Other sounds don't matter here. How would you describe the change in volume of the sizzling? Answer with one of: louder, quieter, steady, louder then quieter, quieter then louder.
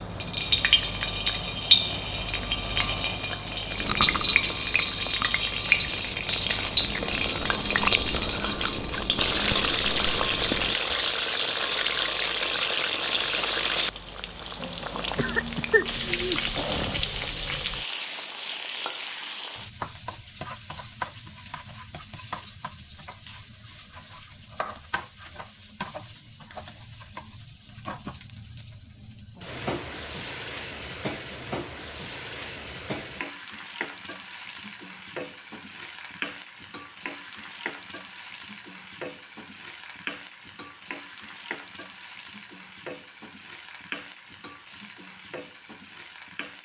quieter.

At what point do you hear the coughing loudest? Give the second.
16 s.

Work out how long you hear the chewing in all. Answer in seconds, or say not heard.
7 s.